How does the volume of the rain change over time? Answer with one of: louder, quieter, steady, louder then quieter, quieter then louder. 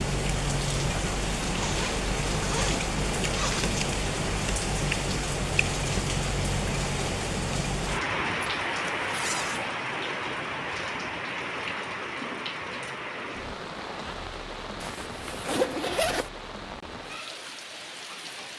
quieter.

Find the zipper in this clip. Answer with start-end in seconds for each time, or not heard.
1.6-3.8, 8.4-9.7, 14.8-16.3.